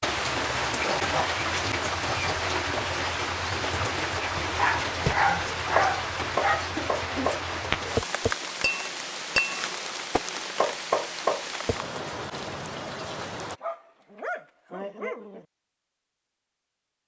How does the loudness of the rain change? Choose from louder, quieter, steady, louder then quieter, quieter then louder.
quieter.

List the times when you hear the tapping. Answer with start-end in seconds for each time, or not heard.
4.3-11.8.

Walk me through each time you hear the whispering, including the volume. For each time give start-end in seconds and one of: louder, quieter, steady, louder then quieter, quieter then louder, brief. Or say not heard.
not heard.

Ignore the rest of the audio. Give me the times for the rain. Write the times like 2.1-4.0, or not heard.
0.0-13.6.